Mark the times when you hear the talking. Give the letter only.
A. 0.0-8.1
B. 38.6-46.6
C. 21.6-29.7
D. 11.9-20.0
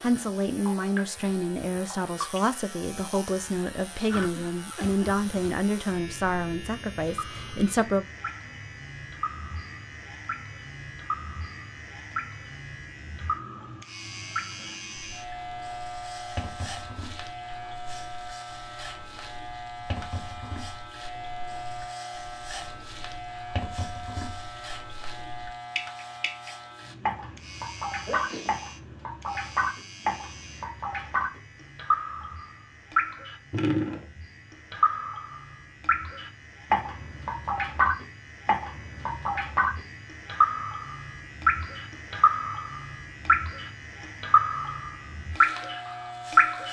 A.